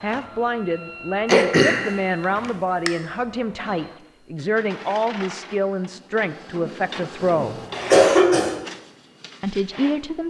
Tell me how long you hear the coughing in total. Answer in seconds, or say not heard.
2 s.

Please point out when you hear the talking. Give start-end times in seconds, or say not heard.
0.0-7.6, 9.4-10.2.